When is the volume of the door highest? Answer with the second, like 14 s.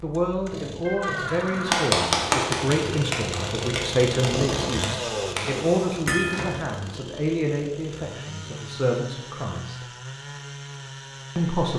1 s.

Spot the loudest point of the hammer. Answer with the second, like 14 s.
2 s.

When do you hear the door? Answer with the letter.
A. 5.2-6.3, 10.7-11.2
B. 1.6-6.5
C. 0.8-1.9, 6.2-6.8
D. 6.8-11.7
C.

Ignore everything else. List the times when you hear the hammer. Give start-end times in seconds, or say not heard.
1.6-6.5.